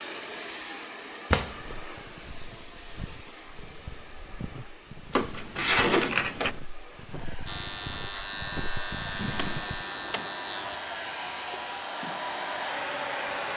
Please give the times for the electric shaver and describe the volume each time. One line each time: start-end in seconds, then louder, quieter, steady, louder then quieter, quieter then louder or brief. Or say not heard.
7.5-13.5 quieter.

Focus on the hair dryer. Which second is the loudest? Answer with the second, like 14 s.
13 s.